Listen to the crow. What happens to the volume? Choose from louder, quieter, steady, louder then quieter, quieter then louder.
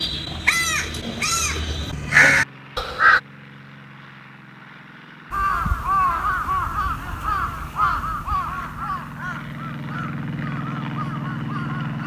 louder then quieter.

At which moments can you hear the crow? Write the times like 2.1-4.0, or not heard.
0.0-3.2, 5.3-12.0.